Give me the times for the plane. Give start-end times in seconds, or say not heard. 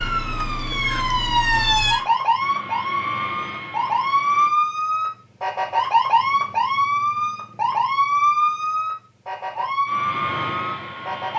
0.0-4.5, 9.8-11.3.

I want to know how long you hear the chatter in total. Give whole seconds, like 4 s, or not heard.
not heard.